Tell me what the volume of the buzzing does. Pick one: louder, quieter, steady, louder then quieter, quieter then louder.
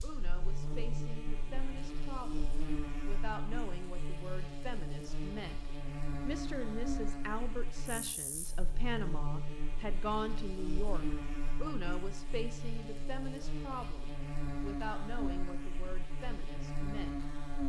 steady.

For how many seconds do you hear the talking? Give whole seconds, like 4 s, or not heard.
17 s.